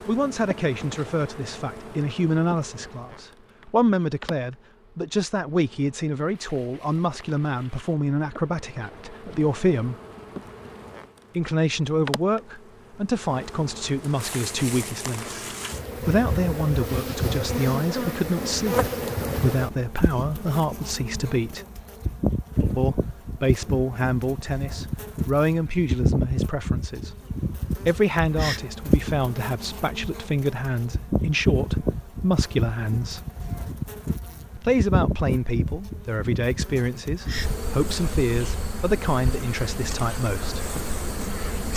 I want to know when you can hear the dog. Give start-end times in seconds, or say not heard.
not heard.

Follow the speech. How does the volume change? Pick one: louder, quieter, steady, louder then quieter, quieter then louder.
steady.